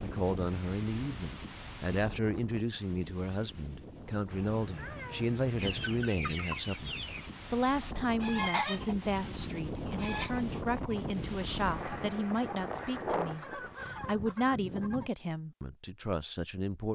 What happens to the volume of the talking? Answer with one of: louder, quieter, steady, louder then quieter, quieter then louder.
steady.